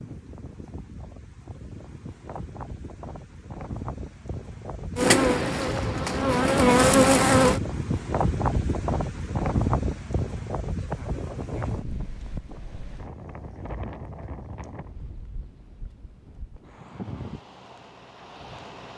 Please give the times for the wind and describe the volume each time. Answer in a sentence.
You can hear the wind from 0.0 to 18.9 s, getting louder then quieter.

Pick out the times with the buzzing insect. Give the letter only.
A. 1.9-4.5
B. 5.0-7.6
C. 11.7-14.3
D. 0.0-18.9
B.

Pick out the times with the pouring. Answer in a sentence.
The pouring can't be heard in this clip.